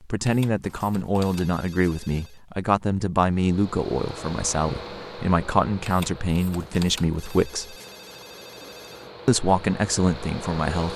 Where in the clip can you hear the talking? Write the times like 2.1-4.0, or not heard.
0.0-7.8, 9.2-10.9.